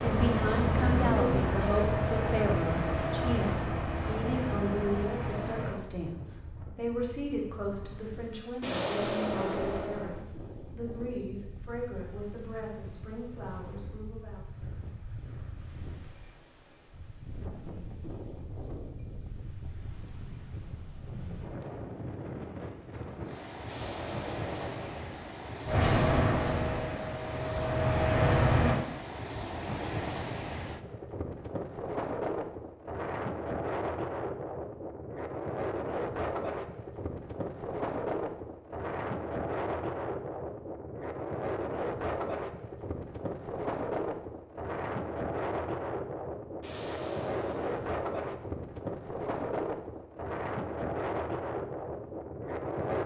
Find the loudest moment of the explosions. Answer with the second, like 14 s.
9 s.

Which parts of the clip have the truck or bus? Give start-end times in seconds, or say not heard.
0.0-5.8, 25.6-28.8.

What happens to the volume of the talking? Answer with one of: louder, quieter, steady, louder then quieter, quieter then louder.
quieter.